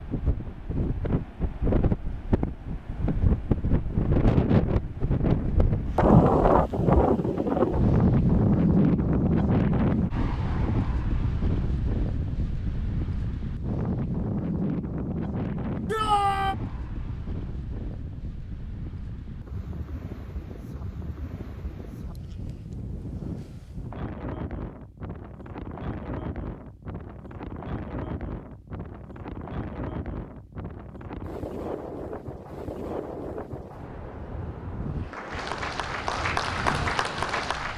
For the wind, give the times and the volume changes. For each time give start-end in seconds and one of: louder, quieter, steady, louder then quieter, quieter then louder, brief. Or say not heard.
0.0-37.7 quieter.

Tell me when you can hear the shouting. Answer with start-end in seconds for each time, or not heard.
15.8-16.6.